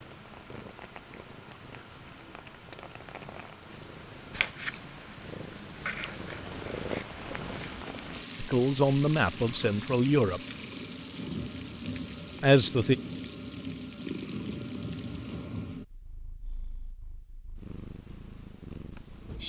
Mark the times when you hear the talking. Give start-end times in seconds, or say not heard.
8.3-10.4, 12.4-12.9.